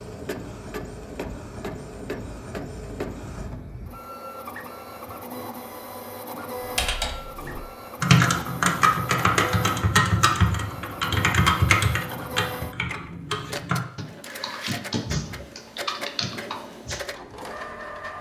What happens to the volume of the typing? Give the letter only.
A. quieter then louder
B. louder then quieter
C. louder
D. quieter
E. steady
D.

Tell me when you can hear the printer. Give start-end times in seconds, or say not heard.
0.0-18.1.